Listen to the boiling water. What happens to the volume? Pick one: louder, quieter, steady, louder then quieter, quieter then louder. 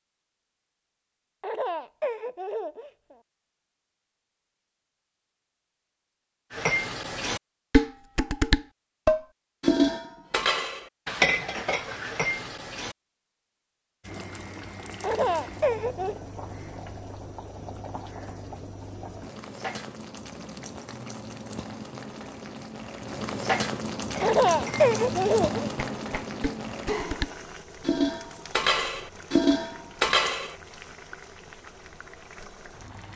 louder then quieter.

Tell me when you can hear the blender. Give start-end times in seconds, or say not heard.
not heard.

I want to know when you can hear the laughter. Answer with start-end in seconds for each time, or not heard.
1.4-3.1, 15.0-16.1, 24.2-25.7.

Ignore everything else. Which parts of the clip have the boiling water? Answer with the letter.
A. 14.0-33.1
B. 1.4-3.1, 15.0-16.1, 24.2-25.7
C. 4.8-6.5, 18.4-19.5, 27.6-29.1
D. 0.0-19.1
A.